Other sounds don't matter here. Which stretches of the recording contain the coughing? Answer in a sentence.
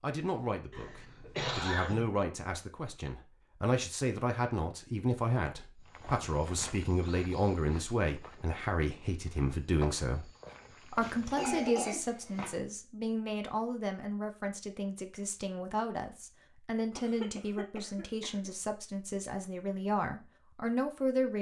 You can hear the coughing from 0.7 to 2.1 s, from 11.0 to 12.6 s and from 16.9 to 18.5 s.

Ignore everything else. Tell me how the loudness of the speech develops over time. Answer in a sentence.
The volume of the speech stays about the same.